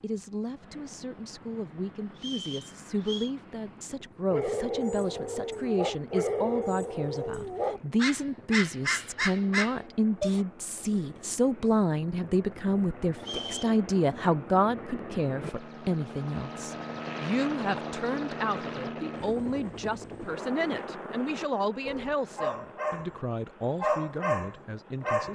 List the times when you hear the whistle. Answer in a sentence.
You can hear the whistle from 2.1 to 3.3 s and from 13.2 to 13.8 s.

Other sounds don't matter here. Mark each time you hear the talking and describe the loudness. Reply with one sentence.
The talking can be heard from 0.0 to 25.2 s, getting louder then quieter.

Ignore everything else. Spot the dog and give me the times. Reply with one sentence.
You can hear the dog from 4.3 to 10.4 s and from 21.9 to 25.2 s.